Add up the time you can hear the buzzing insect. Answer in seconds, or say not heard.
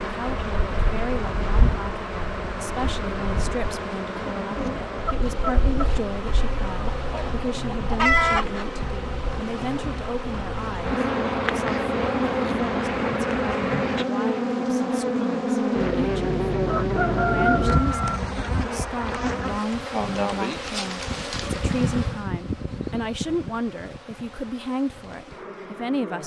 26 s.